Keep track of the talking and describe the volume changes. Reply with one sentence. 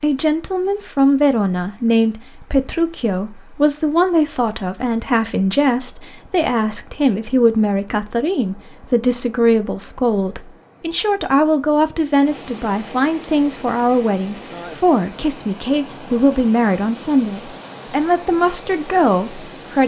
The volume of the talking stays about the same.